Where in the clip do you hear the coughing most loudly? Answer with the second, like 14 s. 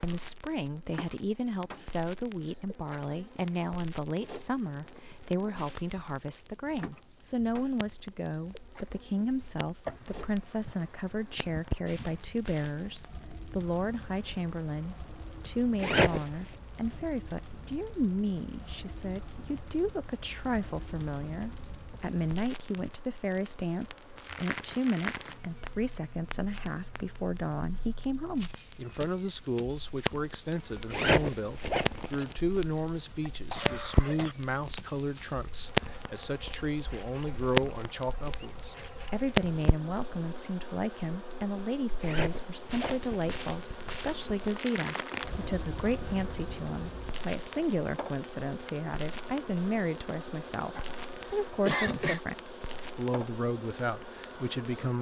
52 s.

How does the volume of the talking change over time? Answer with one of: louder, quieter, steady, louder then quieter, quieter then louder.
steady.